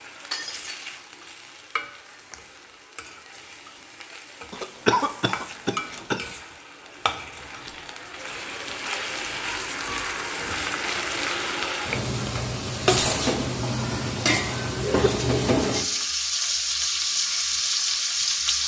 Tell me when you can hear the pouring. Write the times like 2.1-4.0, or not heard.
not heard.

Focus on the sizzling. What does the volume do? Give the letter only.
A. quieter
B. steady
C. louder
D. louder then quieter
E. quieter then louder
C.